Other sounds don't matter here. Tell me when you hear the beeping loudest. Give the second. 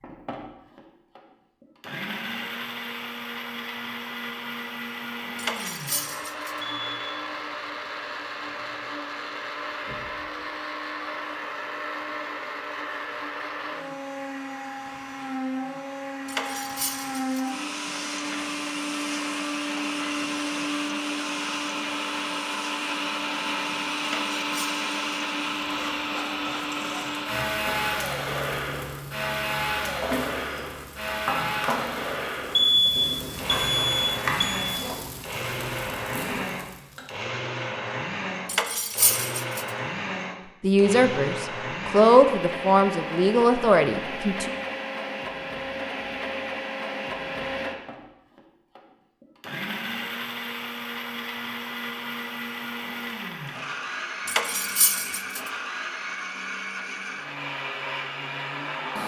33 s.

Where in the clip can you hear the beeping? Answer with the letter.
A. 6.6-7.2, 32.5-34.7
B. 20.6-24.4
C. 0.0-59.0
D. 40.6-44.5
A.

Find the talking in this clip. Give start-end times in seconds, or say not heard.
40.6-44.5.